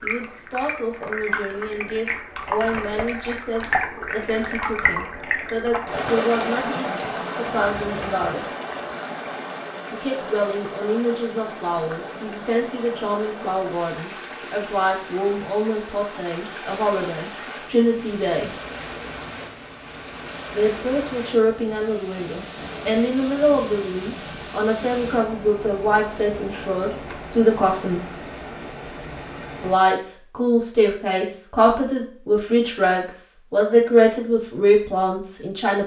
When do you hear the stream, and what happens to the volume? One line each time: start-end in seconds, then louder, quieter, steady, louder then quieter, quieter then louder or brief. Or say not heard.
0.0-29.8 quieter.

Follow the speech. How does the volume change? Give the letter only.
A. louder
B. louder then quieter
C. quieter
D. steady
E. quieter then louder
A.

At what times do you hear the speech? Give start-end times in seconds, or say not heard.
0.0-8.4, 9.9-18.5, 20.5-28.0, 29.6-35.8.